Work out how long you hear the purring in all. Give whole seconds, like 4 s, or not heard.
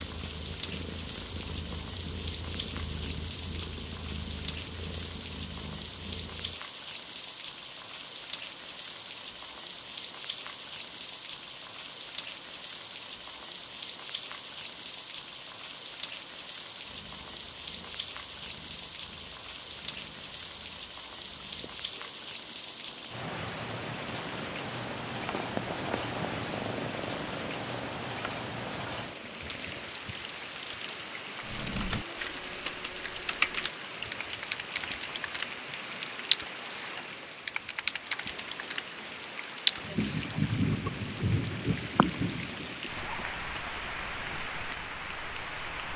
20 s.